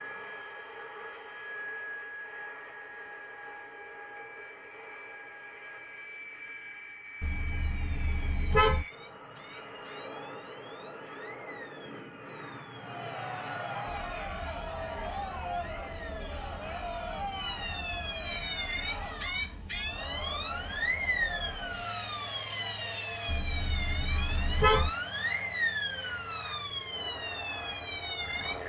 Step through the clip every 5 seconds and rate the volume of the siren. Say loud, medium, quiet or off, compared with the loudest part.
off, quiet, quiet, loud, loud, loud.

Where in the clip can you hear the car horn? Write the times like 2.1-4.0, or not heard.
7.2-8.8, 23.2-24.9.